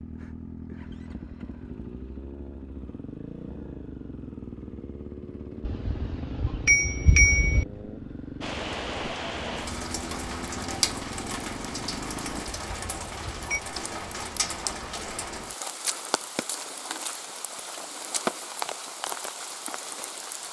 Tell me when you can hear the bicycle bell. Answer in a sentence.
The bicycle bell can be heard from 5.7 to 7.7 s and from 12.4 to 13.6 s.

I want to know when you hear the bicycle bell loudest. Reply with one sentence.
The volume of the bicycle bell peaks at 7 seconds.